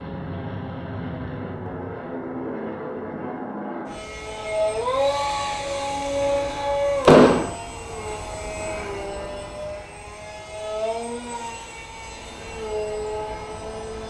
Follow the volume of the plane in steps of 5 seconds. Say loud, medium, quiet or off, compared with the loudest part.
loud, loud, medium.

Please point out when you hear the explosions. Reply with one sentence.
The explosions can be heard from 7.0 to 7.5 s.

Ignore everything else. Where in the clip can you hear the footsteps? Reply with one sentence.
The footsteps can't be heard in this clip.